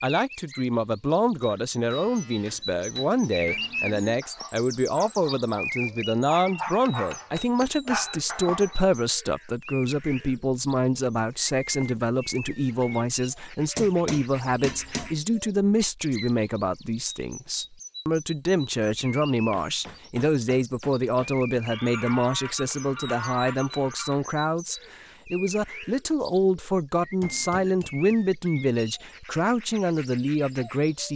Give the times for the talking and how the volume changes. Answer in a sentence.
You can hear the talking from 0.0 to 31.1 s, at a steady volume.